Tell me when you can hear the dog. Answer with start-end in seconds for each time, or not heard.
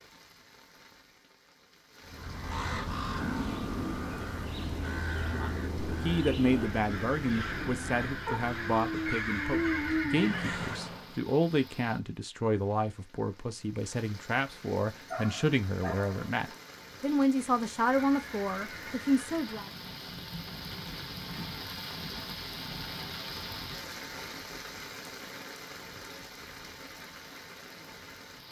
8.2-10.3, 15.1-16.6.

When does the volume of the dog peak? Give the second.
10 s.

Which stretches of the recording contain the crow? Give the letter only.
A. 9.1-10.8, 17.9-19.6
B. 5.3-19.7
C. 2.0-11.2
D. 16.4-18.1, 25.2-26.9
C.